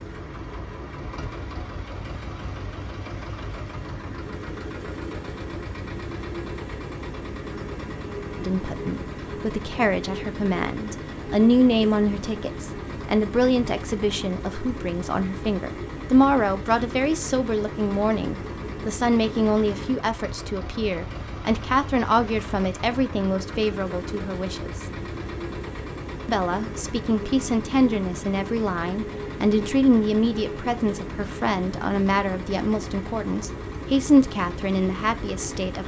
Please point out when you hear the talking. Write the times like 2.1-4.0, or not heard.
8.4-24.9, 26.2-35.8.